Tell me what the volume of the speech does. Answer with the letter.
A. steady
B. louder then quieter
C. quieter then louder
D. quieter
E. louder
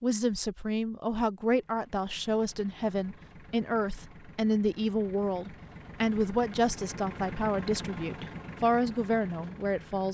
A.